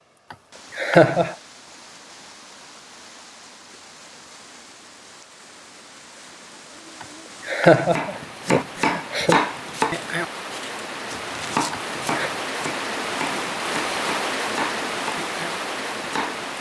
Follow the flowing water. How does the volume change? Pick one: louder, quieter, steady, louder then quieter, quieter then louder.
louder.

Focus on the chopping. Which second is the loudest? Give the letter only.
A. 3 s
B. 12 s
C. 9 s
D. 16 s
C.